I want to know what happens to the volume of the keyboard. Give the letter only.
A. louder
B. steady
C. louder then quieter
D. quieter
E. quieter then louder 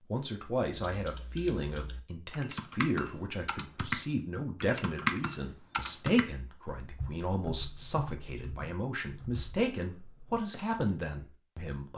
C.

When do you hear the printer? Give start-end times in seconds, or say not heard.
not heard.